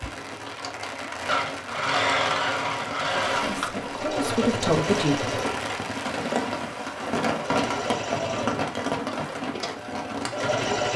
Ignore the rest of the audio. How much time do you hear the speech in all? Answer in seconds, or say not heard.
2 s.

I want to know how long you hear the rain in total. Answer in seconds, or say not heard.
11 s.